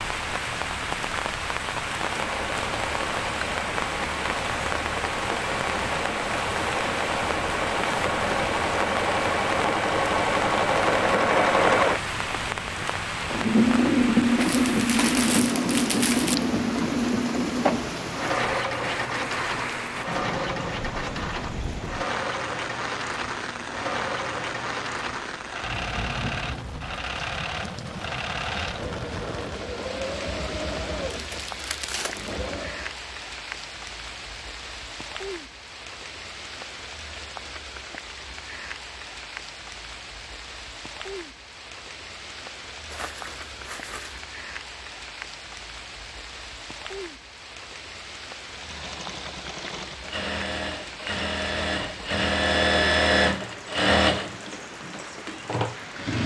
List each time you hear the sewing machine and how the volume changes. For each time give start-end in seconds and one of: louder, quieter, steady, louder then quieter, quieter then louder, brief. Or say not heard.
2.0-33.0 louder then quieter
48.5-56.2 louder then quieter.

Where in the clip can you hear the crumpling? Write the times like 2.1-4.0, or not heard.
14.3-16.4, 31.2-32.3, 42.9-44.2.